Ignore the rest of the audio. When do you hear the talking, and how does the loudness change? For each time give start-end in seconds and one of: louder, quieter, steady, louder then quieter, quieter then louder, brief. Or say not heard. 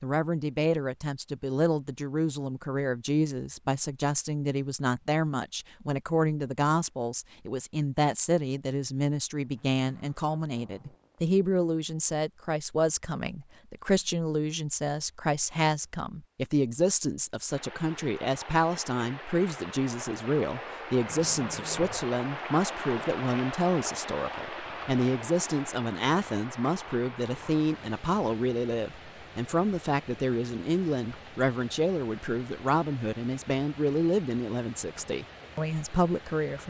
0.0-36.6 steady.